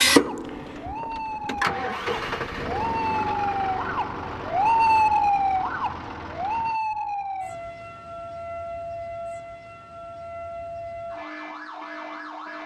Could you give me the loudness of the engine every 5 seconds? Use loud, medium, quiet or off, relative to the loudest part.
loud, quiet, off.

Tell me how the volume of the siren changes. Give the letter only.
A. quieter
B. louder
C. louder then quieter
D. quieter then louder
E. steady
C.